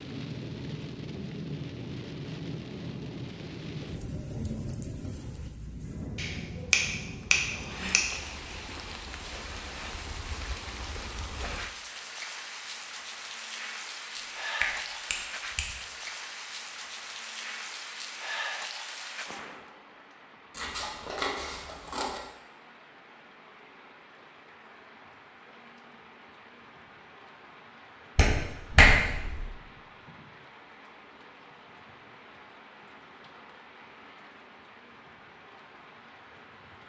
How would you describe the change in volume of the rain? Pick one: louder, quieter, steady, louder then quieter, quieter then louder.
quieter.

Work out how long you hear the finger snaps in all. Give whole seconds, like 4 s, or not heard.
5 s.